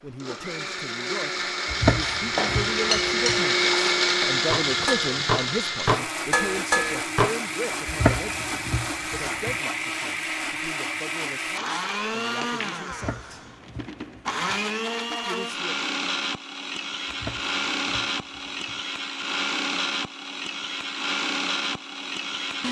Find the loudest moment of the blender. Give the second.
4 s.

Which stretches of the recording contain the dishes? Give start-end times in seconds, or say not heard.
2.4-7.3.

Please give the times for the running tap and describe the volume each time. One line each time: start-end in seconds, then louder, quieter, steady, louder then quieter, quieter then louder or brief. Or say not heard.
not heard.